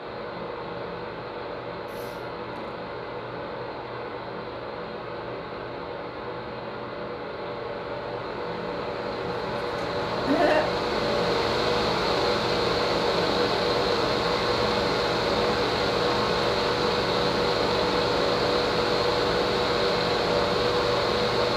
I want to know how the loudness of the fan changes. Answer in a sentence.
The loudness of the fan goes up.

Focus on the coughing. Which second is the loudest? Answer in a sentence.
The loudest moment of the coughing is at 10 seconds.